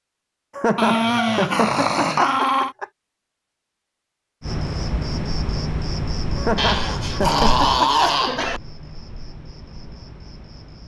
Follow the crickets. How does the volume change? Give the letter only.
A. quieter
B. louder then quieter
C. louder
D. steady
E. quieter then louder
A.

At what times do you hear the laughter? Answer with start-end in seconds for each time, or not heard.
0.6-2.9, 6.3-8.2.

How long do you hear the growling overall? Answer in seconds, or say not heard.
4 s.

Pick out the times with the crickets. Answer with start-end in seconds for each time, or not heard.
4.4-10.8.